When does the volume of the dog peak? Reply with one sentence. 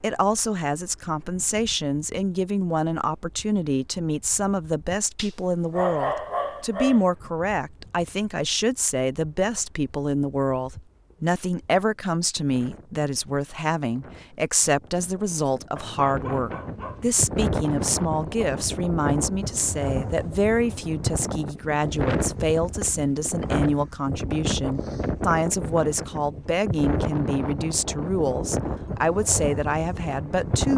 The volume of the dog peaks at 6 seconds.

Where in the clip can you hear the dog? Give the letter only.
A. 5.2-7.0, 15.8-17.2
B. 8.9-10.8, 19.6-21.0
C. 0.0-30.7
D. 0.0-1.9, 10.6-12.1
A.